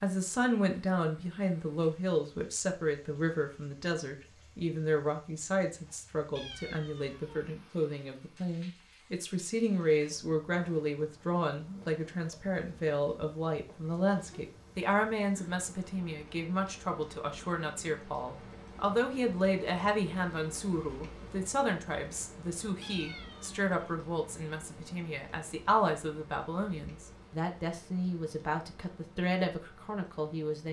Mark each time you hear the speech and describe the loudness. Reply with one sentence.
The speech can be heard from 0.0 to 30.6 s, at a steady volume.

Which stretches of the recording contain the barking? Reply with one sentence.
The barking can't be heard in this clip.